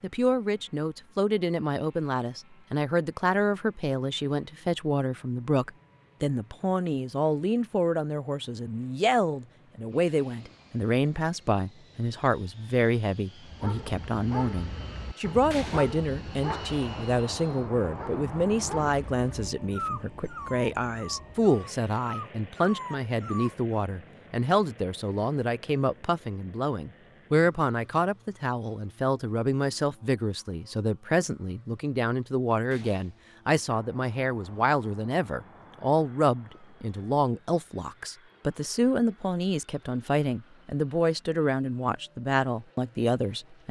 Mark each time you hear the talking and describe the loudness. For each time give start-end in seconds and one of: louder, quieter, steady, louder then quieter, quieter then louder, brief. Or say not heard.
0.0-43.6 steady.